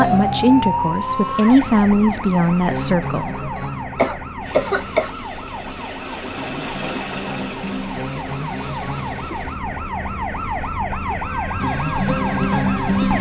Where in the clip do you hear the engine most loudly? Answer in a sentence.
The loudest moment of the engine is at 7 seconds.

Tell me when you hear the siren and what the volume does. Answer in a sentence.
The siren can be heard from 0.0 to 13.1 s, getting quieter then louder.